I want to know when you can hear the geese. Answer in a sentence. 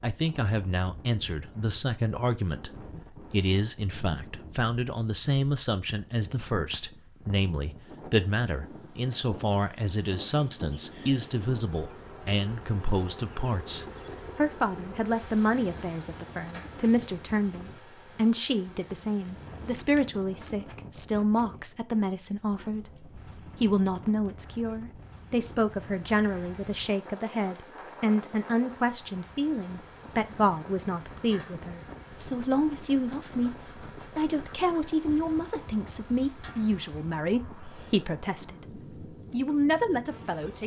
The geese can't be heard in this clip.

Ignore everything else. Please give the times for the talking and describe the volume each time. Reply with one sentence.
You can hear the talking from 0.0 to 40.6 s, at a steady volume.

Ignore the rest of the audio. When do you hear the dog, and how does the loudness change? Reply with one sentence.
The dog can't be heard in this clip.